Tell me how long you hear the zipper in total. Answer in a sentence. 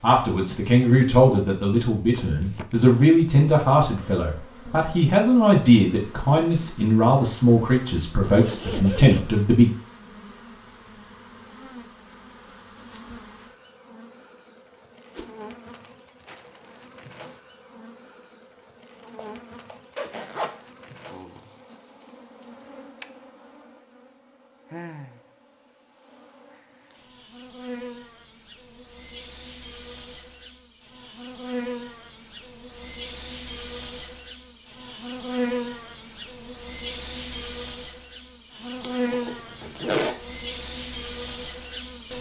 You can hear the zipper for 4 seconds altogether.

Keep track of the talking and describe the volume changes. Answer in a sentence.
The loudness of the talking stays about the same.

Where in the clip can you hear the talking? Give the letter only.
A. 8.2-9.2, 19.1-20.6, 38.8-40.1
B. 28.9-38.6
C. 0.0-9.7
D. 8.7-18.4
C.